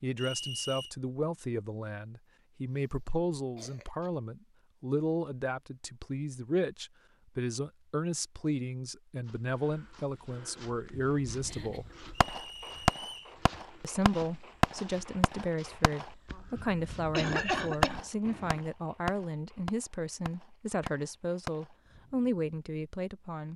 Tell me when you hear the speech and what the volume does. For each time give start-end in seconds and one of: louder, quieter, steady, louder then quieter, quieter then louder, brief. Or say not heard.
0.0-11.8 steady
13.8-23.5 steady.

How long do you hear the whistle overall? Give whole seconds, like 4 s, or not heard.
2 s.